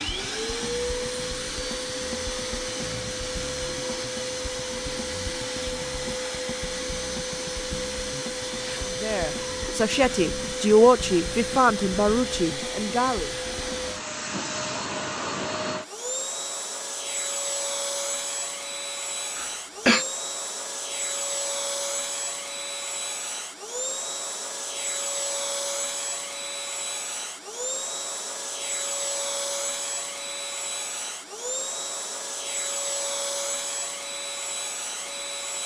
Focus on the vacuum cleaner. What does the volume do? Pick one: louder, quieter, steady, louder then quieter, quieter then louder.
steady.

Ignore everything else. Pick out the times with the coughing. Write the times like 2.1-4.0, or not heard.
19.4-20.1.